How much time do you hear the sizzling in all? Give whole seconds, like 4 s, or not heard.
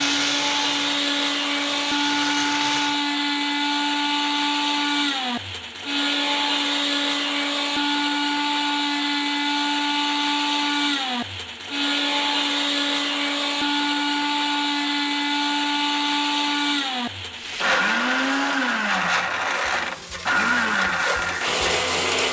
8 s.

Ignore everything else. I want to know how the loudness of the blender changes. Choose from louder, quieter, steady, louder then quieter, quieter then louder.
steady.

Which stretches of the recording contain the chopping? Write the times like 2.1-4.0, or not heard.
not heard.